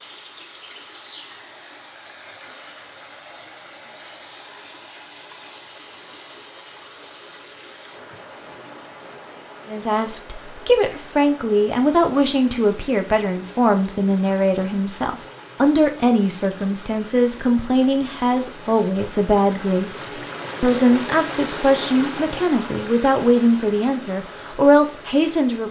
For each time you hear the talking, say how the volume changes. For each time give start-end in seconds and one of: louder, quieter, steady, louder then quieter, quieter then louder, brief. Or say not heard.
9.7-25.6 steady.